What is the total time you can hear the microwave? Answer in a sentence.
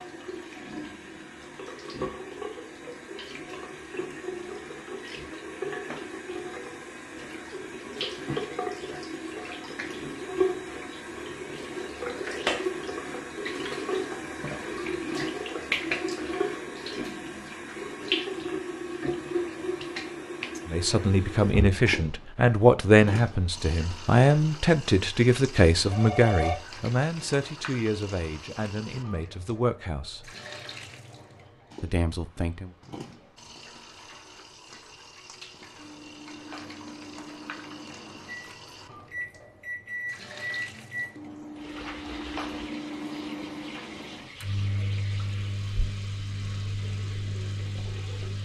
You can hear the microwave for 13 seconds altogether.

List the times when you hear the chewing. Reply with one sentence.
The chewing can't be heard in this clip.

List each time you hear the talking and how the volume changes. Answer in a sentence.
You can hear the talking from 20.6 to 30.3 s, getting quieter; and briefly from 31.8 to 32.8 s.